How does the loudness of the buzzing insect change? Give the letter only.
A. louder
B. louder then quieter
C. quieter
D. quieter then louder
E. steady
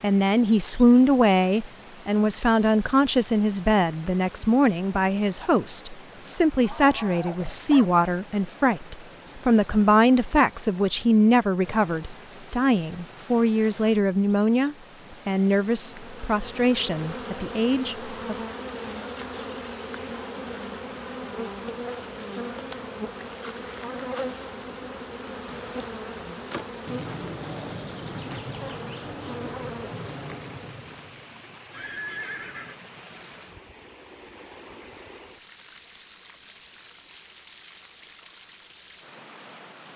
E.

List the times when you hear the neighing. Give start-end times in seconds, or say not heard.
31.7-32.8.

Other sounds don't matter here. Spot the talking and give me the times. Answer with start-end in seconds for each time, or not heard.
0.0-18.4.